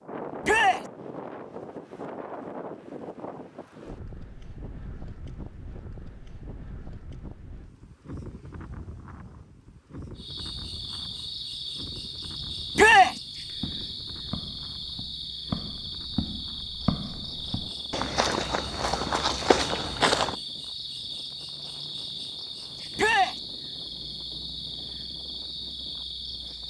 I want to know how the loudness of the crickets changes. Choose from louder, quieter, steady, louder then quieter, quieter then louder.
steady.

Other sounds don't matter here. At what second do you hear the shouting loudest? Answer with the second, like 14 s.
13 s.